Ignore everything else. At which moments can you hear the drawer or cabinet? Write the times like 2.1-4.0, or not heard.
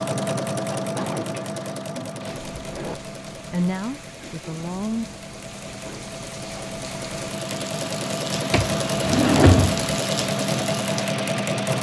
0.9-3.0, 8.5-9.9.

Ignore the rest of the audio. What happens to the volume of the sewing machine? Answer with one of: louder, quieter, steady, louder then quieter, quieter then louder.
quieter then louder.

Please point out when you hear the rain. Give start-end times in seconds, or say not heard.
2.2-11.7.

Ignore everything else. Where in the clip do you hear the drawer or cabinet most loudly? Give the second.
9 s.